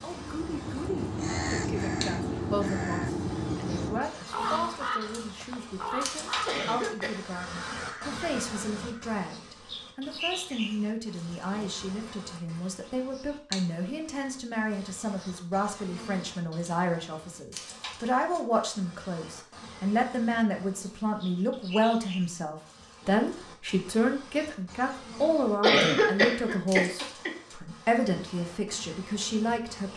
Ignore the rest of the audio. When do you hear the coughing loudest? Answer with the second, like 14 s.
26 s.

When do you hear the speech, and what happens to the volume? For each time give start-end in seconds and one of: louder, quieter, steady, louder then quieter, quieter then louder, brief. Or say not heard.
0.0-29.9 louder.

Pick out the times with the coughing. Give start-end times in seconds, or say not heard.
6.5-7.4, 25.6-27.3.